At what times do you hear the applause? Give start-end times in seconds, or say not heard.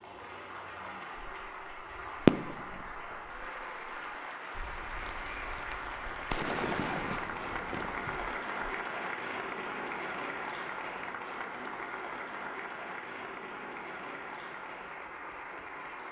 0.0-16.0.